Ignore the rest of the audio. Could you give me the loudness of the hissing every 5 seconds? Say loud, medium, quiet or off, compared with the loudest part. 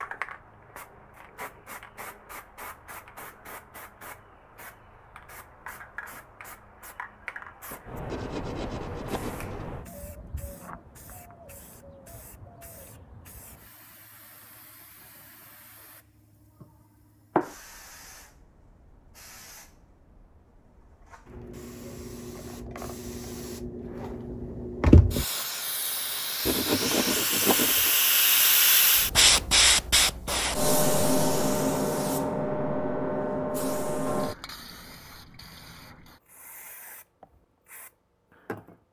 quiet, quiet, quiet, quiet, medium, loud, loud, quiet.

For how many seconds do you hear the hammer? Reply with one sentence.
You can't hear the hammer here.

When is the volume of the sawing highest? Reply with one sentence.
The loudest moment of the sawing is at 27 seconds.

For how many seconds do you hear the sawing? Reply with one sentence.
The sawing can be heard for 3 seconds in total.